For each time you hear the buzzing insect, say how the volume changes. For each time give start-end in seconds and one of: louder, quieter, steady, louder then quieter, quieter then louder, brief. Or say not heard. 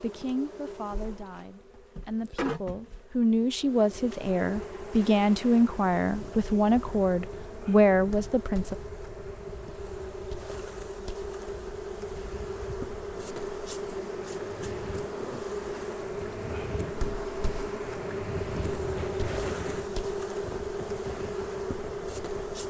0.0-22.6 louder.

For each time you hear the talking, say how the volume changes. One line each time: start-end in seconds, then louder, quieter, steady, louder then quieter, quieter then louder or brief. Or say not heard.
0.0-8.8 louder.